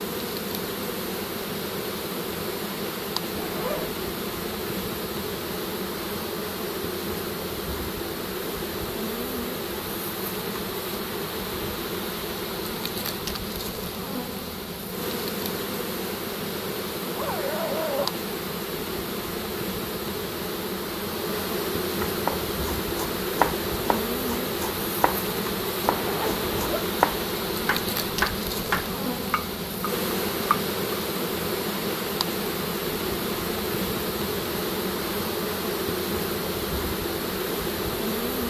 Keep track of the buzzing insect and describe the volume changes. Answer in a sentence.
The loudness of the buzzing insect stays about the same.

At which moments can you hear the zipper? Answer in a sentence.
You can hear the zipper from 3.4 to 4.0 s, from 17.1 to 18.1 s and from 25.9 to 26.9 s.